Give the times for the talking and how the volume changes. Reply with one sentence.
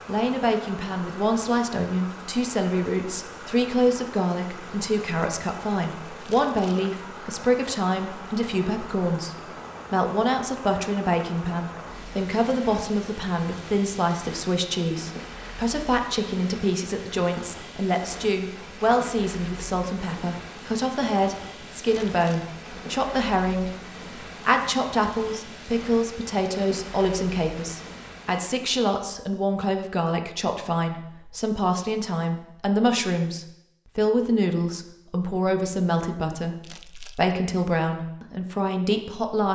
You can hear the talking from 0.1 to 39.5 s, at a steady volume.